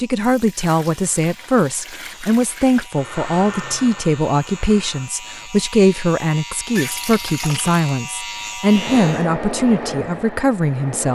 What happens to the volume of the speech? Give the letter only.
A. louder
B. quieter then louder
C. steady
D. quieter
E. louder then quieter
C.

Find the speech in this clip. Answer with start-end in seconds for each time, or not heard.
0.0-11.0.